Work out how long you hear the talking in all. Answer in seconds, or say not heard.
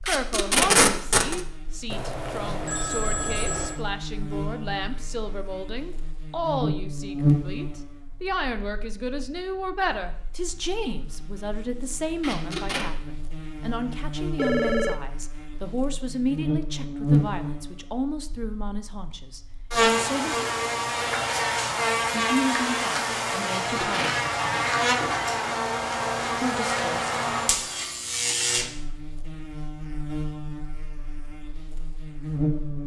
24 s.